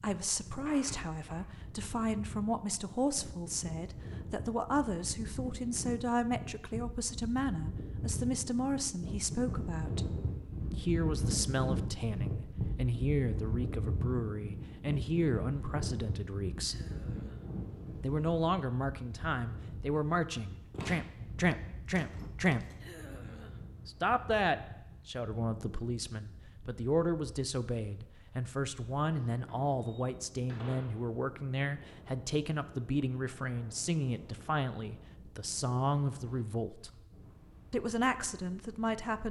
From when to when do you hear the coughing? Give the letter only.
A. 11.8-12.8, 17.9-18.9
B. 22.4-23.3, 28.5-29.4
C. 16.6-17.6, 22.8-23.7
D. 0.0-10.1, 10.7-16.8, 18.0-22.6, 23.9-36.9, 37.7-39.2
C.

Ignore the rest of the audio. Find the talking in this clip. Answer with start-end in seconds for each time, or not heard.
0.0-10.1, 10.7-16.8, 18.0-22.6, 23.9-36.9, 37.7-39.2.